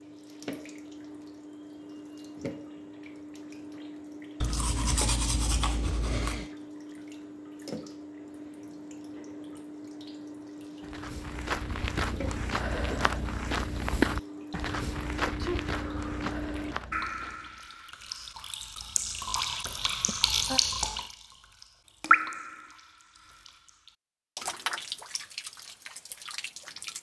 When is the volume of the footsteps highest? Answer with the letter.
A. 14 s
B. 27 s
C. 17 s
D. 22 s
A.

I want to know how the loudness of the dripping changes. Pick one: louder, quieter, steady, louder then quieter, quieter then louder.
louder.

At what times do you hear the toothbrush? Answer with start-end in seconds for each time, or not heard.
4.4-6.5.